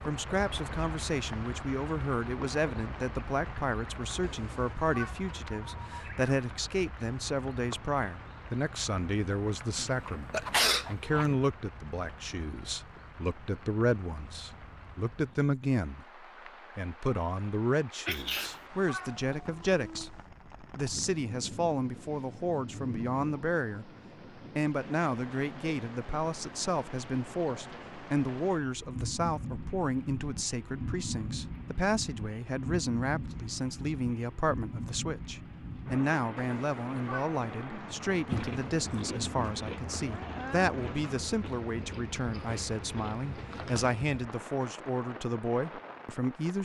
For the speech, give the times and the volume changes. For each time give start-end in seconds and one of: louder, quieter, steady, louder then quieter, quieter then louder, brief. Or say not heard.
0.0-46.6 steady.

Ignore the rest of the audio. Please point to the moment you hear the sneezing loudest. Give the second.
11 s.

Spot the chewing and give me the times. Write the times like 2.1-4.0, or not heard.
38.2-44.0.